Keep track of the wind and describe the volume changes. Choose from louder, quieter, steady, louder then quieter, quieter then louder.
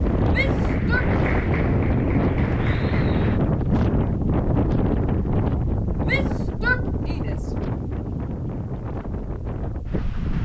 quieter.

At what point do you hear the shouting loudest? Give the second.
7 s.